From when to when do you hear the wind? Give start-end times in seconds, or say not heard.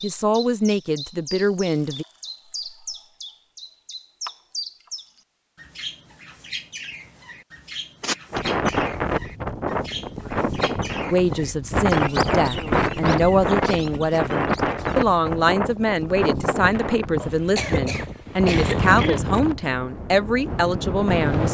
8.3-21.5.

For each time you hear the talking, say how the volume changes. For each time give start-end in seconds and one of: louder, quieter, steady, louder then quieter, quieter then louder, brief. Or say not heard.
0.0-2.0 brief
11.1-21.5 steady.